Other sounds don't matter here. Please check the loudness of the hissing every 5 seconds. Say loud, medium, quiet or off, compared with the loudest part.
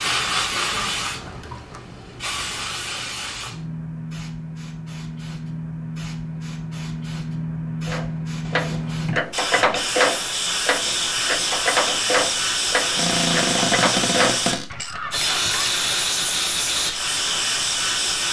medium, medium, loud, loud.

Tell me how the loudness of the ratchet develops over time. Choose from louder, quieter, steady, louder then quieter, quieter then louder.
quieter.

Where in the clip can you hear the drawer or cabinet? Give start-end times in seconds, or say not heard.
0.9-2.6, 8.4-9.9, 12.9-14.7.